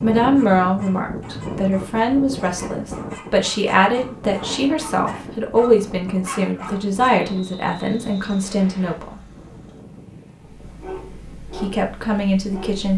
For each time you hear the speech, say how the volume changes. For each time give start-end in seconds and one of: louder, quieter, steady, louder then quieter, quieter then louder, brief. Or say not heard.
0.0-9.2 steady
11.6-12.9 brief.